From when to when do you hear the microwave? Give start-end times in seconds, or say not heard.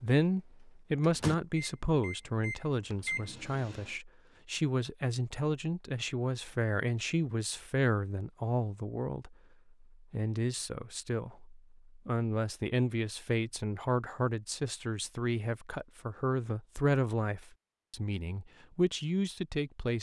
1.0-4.0.